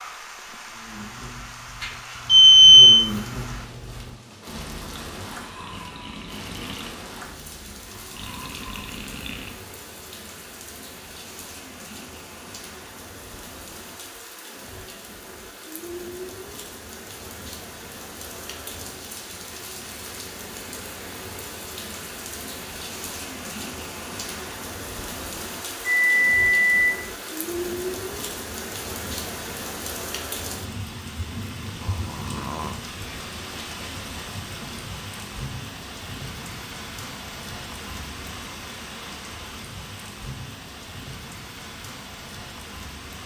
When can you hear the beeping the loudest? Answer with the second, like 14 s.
3 s.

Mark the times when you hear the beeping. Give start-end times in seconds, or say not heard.
1.8-3.0, 25.8-27.0.